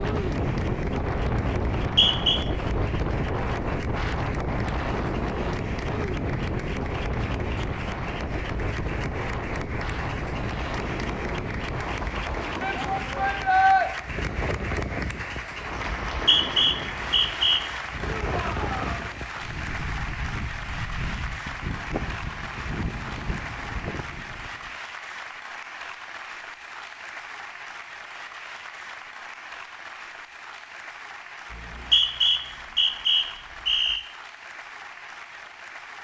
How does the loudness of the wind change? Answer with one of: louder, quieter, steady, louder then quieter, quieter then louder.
quieter.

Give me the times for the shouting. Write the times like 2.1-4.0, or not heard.
12.6-13.9, 18.2-19.1.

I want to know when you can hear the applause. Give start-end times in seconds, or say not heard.
0.0-35.9.